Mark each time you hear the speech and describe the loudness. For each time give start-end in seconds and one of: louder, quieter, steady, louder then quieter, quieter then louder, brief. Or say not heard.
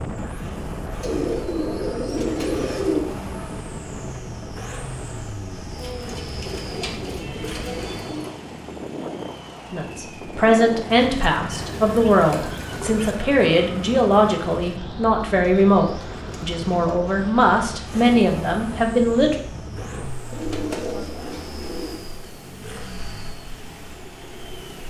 9.7-19.4 steady.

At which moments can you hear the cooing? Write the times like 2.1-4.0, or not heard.
1.0-3.0, 5.8-8.3, 11.6-13.2, 15.3-16.9, 20.3-21.9.